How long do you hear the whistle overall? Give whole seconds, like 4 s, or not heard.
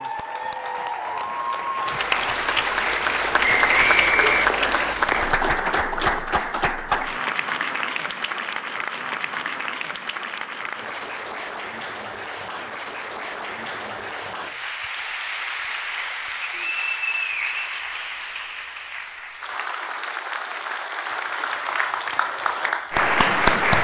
3 s.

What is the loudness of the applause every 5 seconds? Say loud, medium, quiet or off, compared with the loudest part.
loud, loud, medium, medium, loud.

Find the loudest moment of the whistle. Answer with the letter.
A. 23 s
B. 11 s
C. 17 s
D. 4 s
D.